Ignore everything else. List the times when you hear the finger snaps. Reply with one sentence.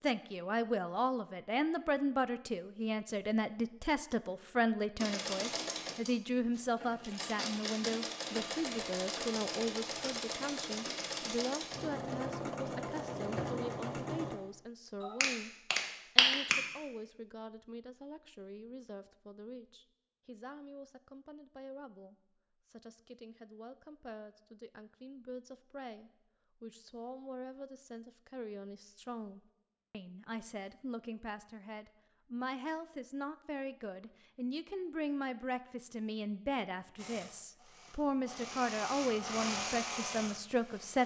You can hear the finger snaps from 15.0 to 16.6 s.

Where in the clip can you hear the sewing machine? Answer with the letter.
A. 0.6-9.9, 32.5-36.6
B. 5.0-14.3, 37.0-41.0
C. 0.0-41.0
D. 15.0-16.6
B.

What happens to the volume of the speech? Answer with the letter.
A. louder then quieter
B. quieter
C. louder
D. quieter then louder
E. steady
D.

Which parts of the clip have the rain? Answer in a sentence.
The rain can't be heard in this clip.